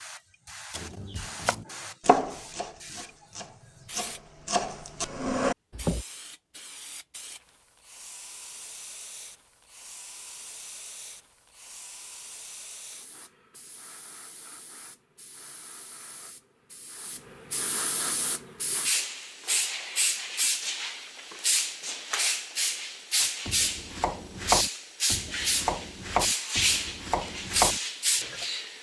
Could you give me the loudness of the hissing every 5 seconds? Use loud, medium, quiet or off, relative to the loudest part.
quiet, quiet, quiet, medium, loud, loud.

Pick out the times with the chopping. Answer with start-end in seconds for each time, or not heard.
0.7-6.0, 23.2-28.4.